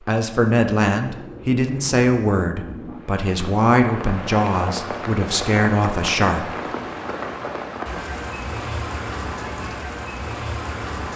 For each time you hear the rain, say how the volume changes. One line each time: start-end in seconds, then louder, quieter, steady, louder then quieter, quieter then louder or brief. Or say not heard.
0.0-11.1 louder.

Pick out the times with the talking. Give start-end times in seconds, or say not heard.
0.1-6.5.